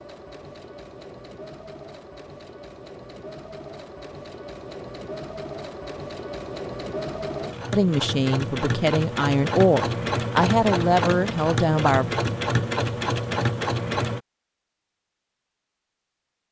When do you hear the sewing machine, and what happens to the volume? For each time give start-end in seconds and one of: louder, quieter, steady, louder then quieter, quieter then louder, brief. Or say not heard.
0.0-14.2 louder.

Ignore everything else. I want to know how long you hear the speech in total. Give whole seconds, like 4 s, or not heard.
4 s.